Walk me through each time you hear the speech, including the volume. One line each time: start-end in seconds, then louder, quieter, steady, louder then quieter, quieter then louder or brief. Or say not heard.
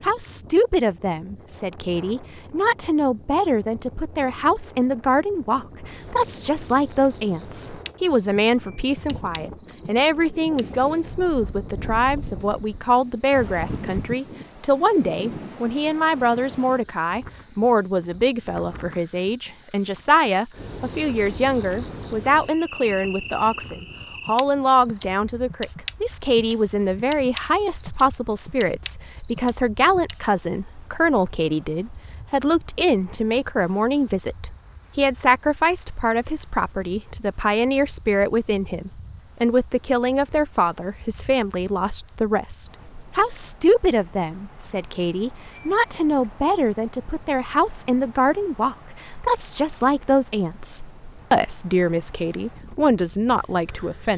0.0-54.1 steady.